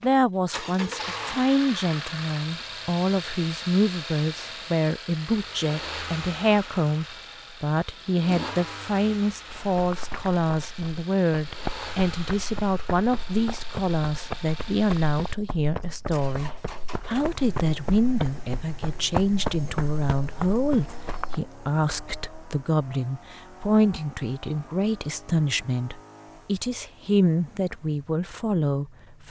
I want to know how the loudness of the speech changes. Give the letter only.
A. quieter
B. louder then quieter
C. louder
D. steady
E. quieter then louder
D.